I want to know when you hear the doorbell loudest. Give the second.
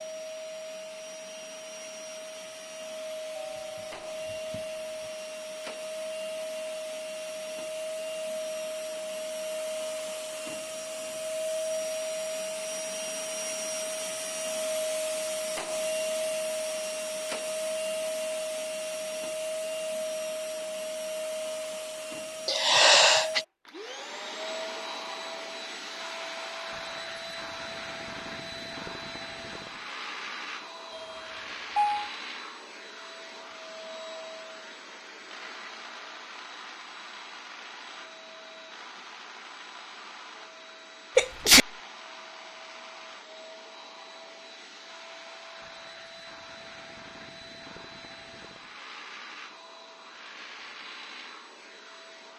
32 s.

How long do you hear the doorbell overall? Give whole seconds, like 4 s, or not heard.
3 s.